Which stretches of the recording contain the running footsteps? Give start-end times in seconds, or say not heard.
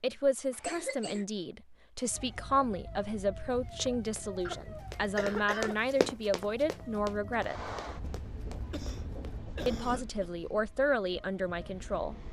3.7-9.4.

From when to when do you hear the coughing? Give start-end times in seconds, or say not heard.
0.5-1.2, 4.5-5.8, 8.6-10.3.